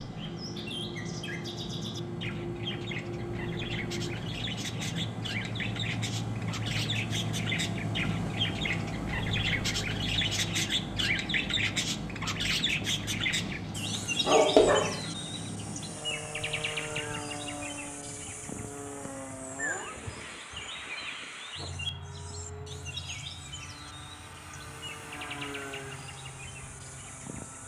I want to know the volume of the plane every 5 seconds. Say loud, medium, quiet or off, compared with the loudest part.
loud, loud, loud, medium, medium, medium.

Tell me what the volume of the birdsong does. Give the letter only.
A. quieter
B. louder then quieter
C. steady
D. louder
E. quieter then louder
B.